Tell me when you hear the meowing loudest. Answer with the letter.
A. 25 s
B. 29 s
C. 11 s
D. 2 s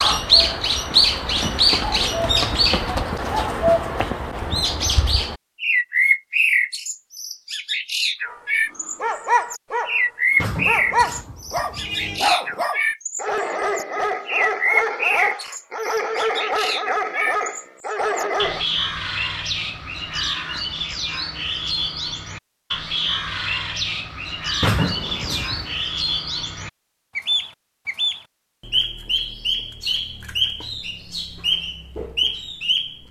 A.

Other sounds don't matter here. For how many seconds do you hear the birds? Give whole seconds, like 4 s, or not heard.
33 s.